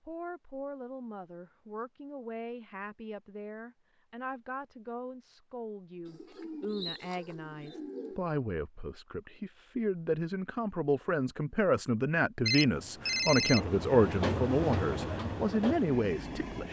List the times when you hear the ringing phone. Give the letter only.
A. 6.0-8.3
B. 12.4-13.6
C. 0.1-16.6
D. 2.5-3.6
B.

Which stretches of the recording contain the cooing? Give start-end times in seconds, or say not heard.
6.0-8.3.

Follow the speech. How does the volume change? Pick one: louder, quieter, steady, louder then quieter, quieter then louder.
louder.